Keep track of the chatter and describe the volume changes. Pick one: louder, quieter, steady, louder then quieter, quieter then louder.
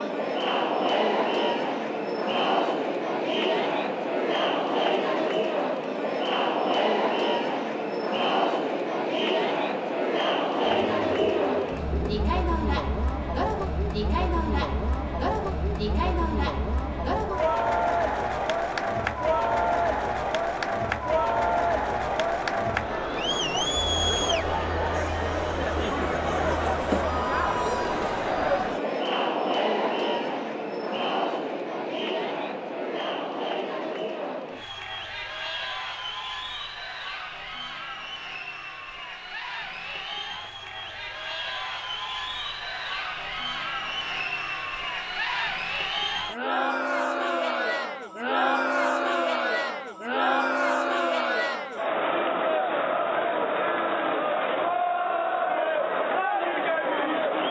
quieter then louder.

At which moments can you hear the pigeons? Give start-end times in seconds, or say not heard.
10.7-12.2.